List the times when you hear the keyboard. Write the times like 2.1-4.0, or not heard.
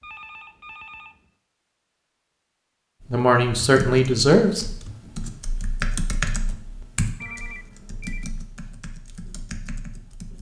3.0-10.3.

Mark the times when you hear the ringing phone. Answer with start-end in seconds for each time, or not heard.
0.0-1.3, 7.2-8.3.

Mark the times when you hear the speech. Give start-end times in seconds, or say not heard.
3.1-4.7.